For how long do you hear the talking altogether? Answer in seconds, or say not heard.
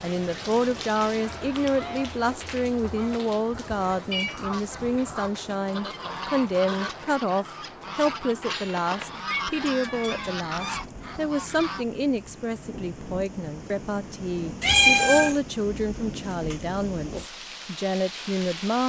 19 s.